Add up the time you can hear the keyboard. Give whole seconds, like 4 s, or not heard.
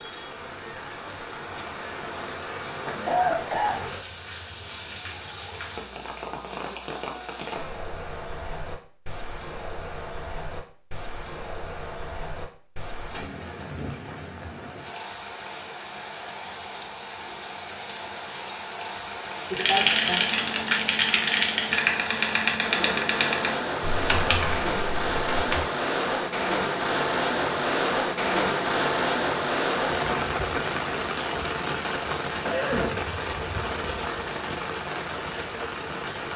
6 s.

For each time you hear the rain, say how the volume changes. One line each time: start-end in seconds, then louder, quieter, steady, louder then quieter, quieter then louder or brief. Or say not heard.
0.0-36.3 louder.